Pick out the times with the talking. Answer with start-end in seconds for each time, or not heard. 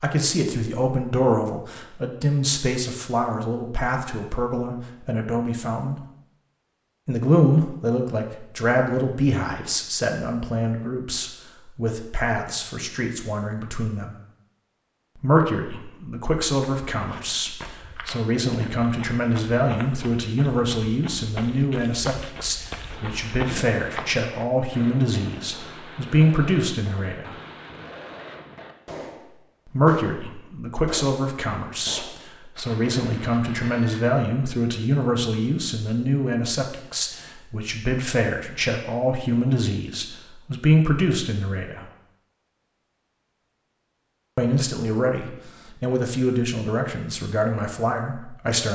0.0-6.0, 7.0-14.1, 15.2-27.3, 29.7-41.9, 44.4-48.7.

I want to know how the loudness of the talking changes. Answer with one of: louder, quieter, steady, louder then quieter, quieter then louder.
steady.